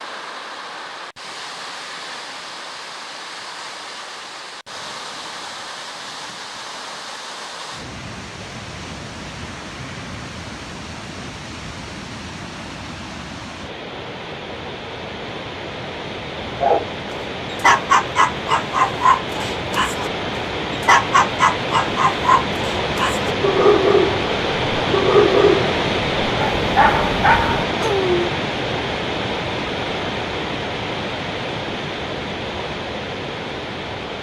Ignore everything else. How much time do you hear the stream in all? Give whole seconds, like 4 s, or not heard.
34 s.